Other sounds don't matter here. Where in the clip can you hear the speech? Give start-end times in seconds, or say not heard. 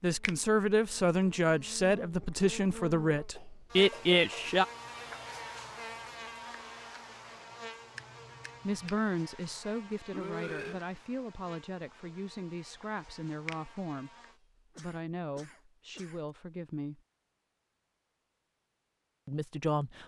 0.0-4.7, 8.7-14.2, 14.8-17.0, 19.2-20.0.